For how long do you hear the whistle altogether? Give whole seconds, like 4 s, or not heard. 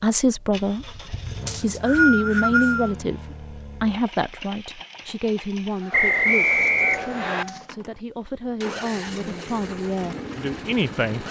3 s.